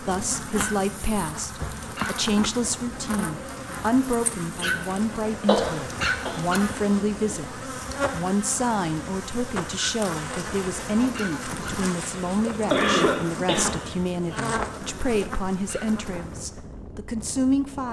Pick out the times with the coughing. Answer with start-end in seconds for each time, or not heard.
5.5-6.4, 11.9-13.9.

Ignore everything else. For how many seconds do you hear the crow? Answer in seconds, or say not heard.
not heard.